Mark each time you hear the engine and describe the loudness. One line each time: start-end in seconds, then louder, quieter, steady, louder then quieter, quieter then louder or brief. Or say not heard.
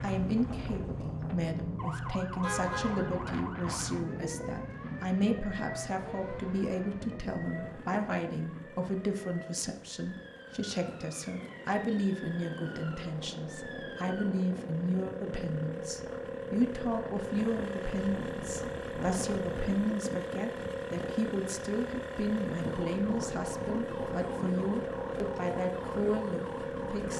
0.0-27.1 quieter then louder.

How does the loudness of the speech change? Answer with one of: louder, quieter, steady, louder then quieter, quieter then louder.
steady.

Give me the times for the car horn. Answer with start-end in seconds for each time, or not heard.
2.4-3.2.